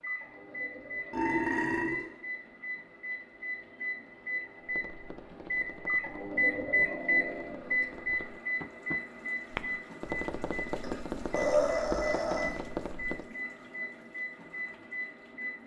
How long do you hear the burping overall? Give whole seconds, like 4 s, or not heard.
3 s.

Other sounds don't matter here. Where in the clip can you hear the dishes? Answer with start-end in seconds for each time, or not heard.
not heard.